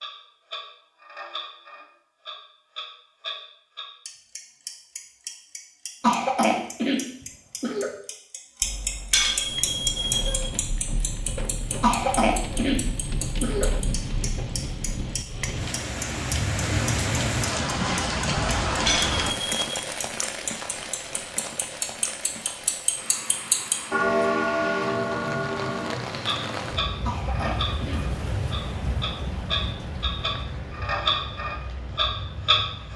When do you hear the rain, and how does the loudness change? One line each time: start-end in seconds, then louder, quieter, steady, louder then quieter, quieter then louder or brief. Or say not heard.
9.4-32.9 louder then quieter.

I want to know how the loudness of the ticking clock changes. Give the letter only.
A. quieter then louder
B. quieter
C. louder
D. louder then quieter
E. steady
C.